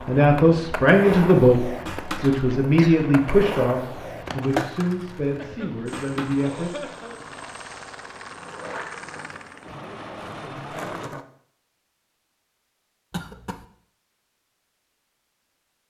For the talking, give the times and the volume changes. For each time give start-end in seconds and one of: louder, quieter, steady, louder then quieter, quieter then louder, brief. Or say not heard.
0.1-6.9 quieter.